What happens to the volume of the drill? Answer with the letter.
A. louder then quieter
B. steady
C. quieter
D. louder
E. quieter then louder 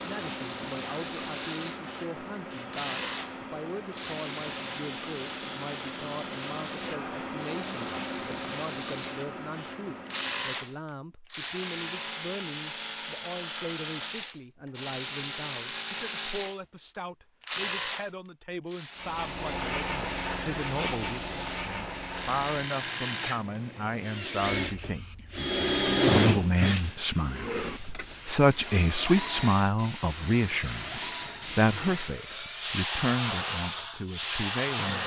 A.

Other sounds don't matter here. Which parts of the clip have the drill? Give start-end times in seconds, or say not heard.
0.0-35.0.